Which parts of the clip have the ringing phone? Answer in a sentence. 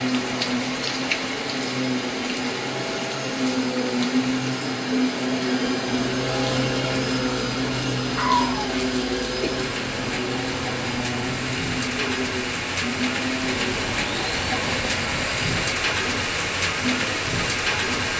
The ringing phone can't be heard in this clip.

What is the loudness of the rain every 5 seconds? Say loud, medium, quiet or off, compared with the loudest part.
medium, medium, loud, loud.